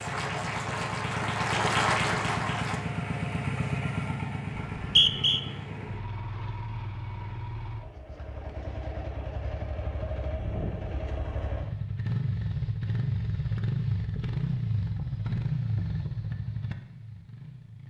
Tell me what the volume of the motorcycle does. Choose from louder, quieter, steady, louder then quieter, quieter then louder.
quieter then louder.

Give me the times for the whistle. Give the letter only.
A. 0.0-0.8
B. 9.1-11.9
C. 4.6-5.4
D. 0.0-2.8
C.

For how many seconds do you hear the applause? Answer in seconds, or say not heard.
3 s.